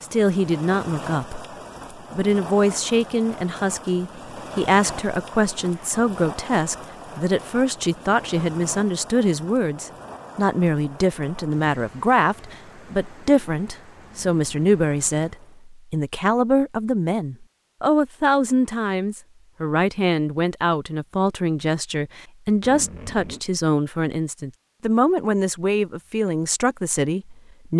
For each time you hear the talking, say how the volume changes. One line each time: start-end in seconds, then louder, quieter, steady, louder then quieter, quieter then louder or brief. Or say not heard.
0.0-27.7 steady.